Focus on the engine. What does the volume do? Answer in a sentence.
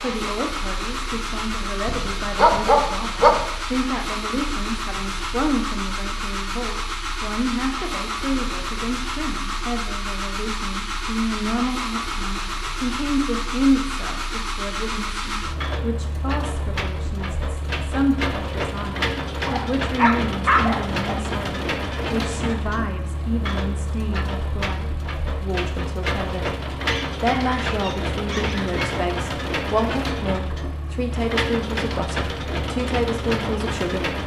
The volume of the engine stays about the same.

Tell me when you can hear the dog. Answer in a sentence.
The dog can be heard from 1.9 to 3.5 s, from 19.4 to 21.2 s and from 26.9 to 28.9 s.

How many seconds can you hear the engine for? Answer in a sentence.
You can hear the engine for 34 seconds altogether.